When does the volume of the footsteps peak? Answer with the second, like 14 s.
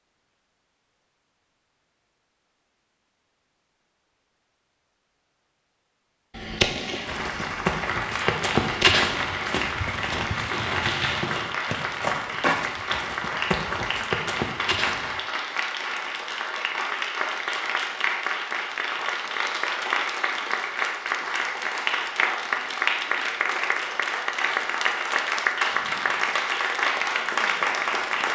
9 s.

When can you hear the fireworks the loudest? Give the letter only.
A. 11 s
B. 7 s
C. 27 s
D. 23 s
B.